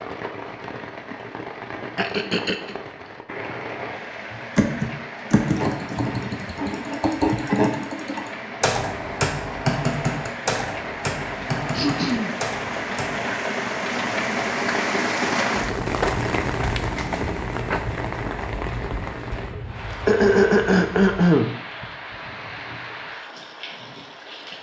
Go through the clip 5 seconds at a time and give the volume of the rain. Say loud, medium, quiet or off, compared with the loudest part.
medium, medium, loud, loud, medium.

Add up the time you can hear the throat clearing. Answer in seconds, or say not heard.
3 s.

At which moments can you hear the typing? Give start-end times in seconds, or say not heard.
4.3-13.2.